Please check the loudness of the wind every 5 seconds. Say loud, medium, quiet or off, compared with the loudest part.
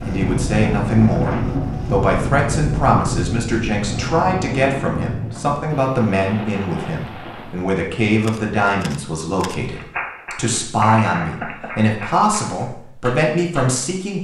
loud, medium, off.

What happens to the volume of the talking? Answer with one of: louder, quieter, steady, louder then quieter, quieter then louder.
steady.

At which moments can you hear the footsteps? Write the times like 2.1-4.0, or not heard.
not heard.